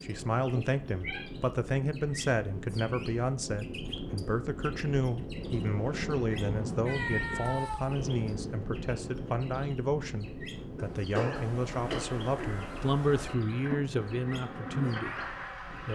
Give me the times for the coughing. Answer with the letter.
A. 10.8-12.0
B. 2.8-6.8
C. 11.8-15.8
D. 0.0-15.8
A.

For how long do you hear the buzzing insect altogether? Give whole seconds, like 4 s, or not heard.
4 s.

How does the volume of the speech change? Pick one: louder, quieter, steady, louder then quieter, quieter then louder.
steady.